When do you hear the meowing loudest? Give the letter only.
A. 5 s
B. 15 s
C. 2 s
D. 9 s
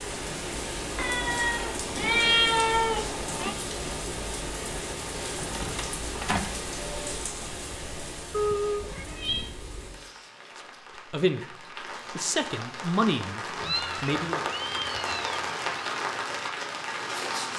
C.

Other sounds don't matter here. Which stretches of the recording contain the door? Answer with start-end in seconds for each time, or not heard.
5.3-6.6.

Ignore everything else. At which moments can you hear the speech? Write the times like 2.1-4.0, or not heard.
11.1-14.4.